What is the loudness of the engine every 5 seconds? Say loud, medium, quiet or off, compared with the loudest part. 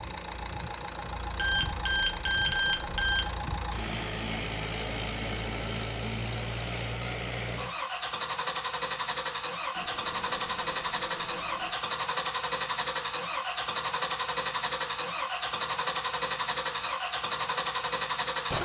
medium, loud, loud, loud.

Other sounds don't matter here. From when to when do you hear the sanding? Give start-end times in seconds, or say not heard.
not heard.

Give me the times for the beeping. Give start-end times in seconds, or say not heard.
1.4-3.3, 9.8-11.8.